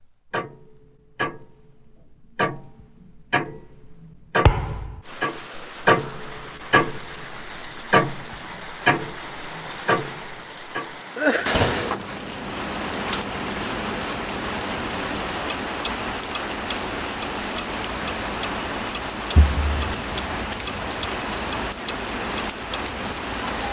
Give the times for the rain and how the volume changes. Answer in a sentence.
You can hear the rain from 5.0 to 23.6 s, getting louder.